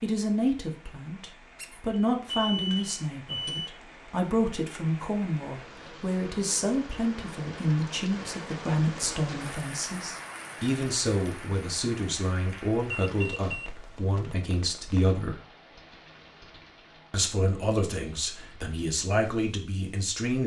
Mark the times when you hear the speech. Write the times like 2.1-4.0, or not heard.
0.0-15.4, 17.1-20.4.